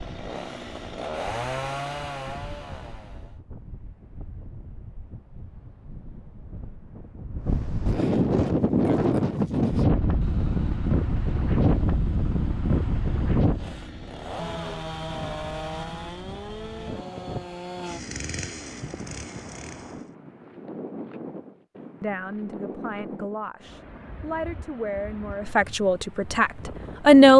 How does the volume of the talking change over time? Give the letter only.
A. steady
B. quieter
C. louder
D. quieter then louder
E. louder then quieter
C.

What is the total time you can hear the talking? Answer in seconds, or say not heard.
5 s.